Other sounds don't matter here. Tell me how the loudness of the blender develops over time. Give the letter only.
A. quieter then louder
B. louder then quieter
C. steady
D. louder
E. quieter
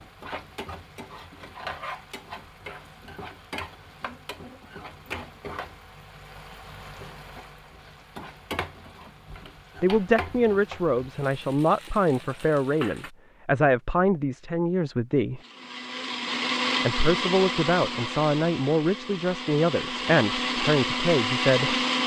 A.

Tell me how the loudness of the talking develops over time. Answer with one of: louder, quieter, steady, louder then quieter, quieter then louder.
steady.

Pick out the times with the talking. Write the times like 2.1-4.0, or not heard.
9.8-15.4, 16.8-21.8.